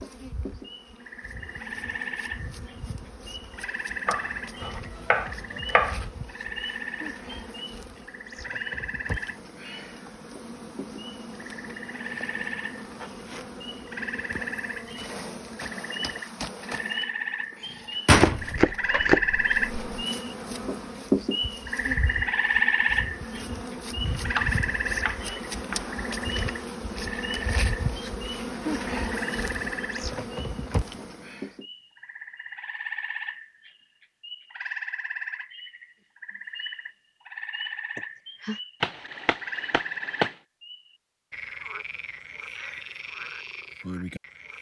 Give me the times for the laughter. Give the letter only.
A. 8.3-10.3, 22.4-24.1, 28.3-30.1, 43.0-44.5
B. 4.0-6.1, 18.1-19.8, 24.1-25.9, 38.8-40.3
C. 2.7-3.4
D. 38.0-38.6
D.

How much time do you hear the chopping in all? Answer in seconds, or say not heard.
7 s.